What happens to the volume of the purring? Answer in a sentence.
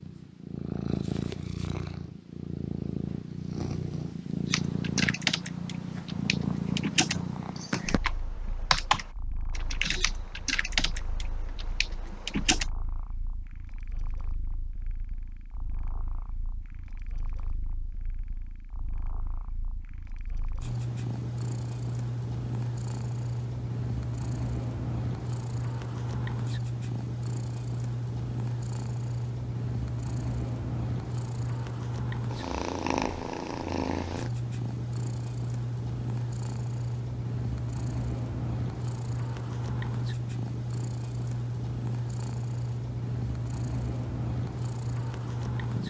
The volume of the purring goes down, then up.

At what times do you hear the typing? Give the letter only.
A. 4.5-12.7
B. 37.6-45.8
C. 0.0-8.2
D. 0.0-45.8
A.